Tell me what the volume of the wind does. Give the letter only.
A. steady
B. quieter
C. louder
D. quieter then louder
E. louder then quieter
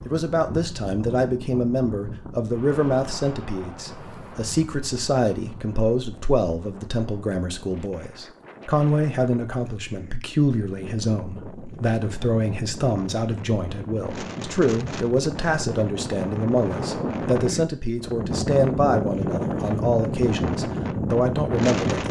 D.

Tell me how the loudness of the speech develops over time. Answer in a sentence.
The loudness of the speech stays about the same.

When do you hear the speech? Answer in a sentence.
The speech can be heard from 0.1 to 22.0 s.